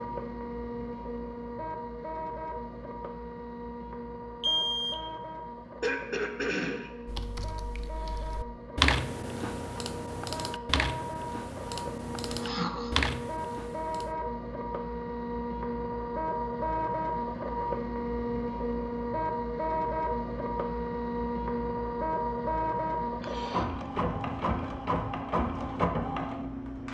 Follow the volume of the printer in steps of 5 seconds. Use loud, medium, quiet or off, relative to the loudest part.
medium, medium, medium, loud, loud, loud.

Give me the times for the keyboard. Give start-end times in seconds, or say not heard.
7.0-14.2.